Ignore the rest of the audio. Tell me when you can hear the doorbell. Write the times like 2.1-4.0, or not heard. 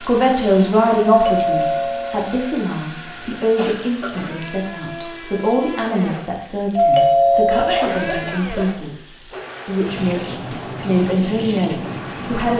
1.1-2.4, 6.8-8.1.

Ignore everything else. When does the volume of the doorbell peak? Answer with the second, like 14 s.
7 s.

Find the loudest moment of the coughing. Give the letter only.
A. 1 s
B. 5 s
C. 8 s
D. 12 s
C.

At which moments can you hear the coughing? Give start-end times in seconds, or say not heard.
3.5-4.5, 7.5-8.7.